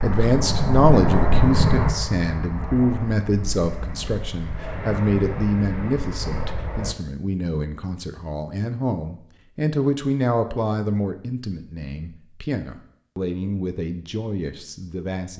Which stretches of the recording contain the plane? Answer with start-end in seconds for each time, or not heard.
0.0-7.0.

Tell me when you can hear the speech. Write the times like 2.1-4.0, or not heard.
0.0-15.3.